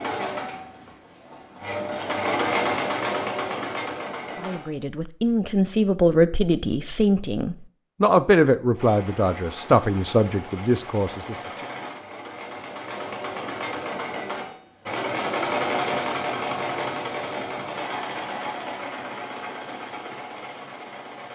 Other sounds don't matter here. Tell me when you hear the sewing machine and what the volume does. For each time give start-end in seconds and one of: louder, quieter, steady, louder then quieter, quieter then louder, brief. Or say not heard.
0.0-4.8 louder then quieter
8.7-21.3 louder then quieter.